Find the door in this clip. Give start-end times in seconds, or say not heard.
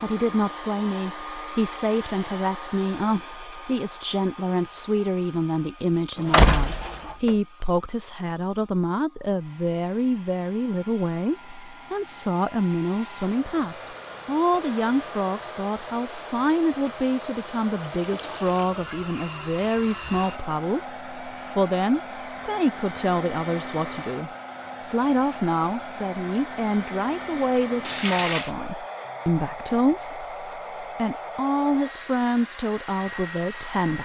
6.3-7.3.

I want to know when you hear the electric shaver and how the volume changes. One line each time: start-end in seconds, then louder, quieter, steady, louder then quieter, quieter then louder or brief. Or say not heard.
not heard.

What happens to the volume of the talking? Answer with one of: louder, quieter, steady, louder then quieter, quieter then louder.
steady.